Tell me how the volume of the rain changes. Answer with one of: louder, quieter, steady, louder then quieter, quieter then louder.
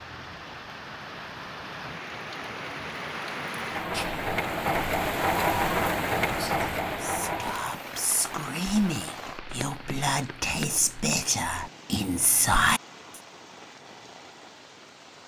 louder then quieter.